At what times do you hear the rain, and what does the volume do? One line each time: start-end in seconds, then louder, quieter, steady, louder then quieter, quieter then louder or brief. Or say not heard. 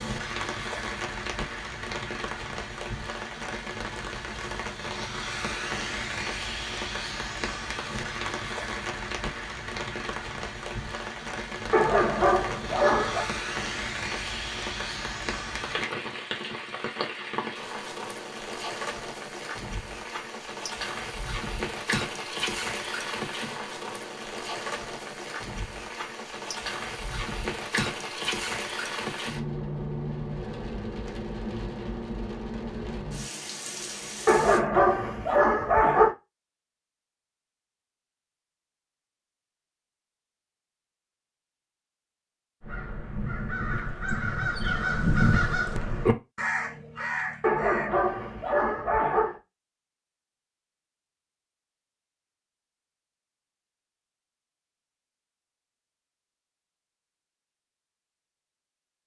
0.0-34.6 steady.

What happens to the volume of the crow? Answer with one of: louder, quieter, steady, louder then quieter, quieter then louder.
louder then quieter.